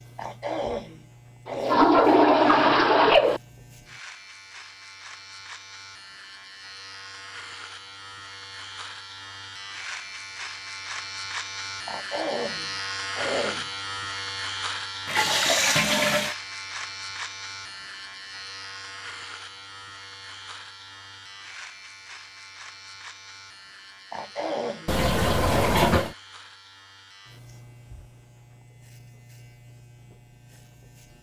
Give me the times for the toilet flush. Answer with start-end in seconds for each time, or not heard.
1.4-3.4, 15.1-16.4, 24.9-26.1.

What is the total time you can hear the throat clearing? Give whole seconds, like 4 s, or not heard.
6 s.